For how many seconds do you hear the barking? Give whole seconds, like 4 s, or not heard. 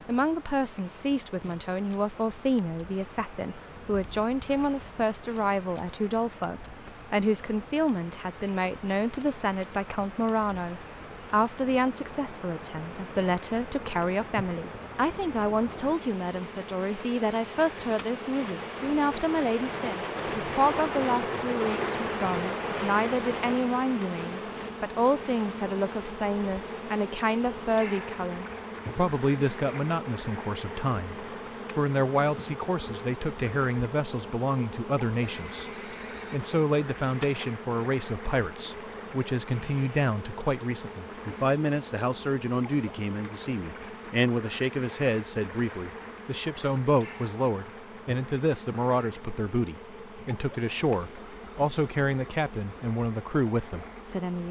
not heard.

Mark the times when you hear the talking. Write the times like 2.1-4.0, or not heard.
0.1-31.1, 31.8-35.6, 36.3-54.4.